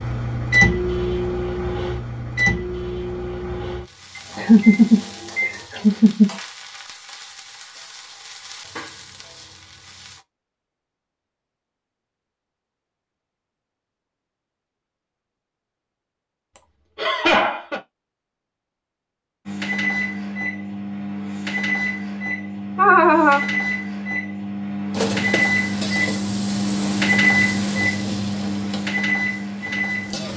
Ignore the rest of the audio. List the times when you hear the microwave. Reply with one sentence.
The microwave can be heard from 0.0 to 5.7 s and from 19.4 to 30.3 s.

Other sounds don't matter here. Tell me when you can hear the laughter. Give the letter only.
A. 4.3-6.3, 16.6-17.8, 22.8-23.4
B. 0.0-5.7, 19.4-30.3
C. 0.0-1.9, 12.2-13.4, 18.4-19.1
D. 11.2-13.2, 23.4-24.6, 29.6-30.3
A.